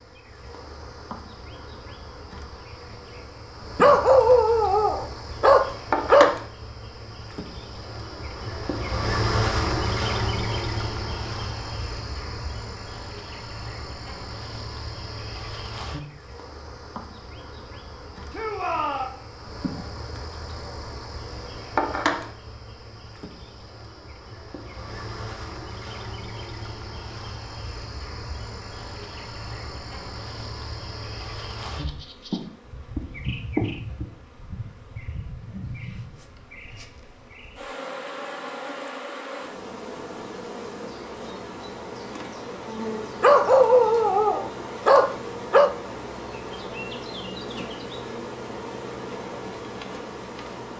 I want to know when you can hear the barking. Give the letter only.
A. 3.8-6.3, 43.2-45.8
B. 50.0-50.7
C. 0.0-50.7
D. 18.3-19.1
A.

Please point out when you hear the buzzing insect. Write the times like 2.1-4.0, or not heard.
0.0-50.7.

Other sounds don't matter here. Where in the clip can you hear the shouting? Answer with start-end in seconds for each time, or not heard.
18.3-19.1.